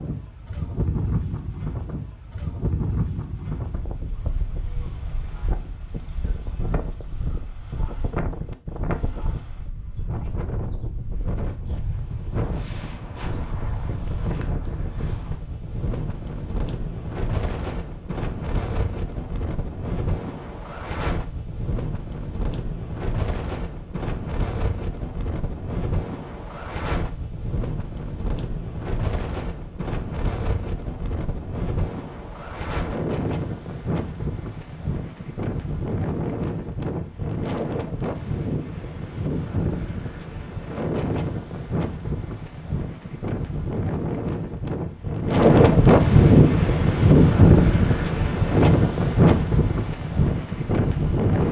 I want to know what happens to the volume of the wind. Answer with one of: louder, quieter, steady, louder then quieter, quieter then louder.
louder.